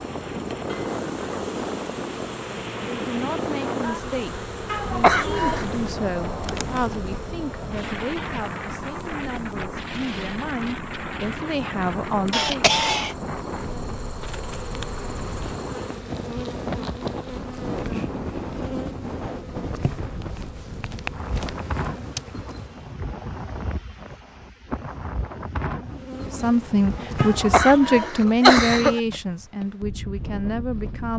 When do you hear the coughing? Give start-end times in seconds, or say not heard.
4.7-5.7, 12.3-13.2, 27.1-29.0.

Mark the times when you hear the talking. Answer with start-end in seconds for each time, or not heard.
2.8-12.7, 26.2-31.1.